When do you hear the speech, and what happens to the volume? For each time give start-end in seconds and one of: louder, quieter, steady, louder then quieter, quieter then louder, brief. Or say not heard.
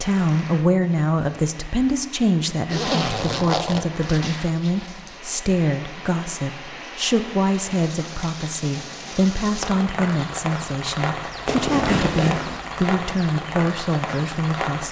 0.0-14.8 steady.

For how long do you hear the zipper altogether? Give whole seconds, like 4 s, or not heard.
4 s.